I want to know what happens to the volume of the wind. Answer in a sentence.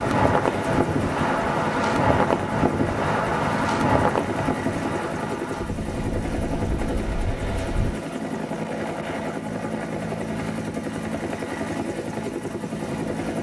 The loudness of the wind goes down.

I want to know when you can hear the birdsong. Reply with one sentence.
You can't hear the birdsong here.